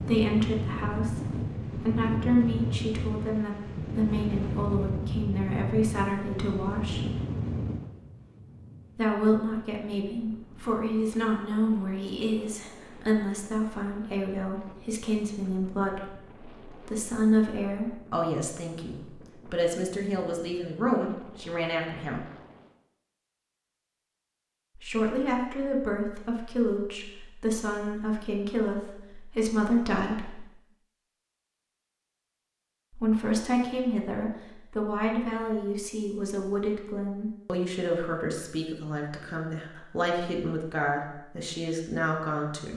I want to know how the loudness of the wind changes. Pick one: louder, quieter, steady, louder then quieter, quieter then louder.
quieter.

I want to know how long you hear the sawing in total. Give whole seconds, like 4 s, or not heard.
not heard.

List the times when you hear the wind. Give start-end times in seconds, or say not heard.
0.0-22.8.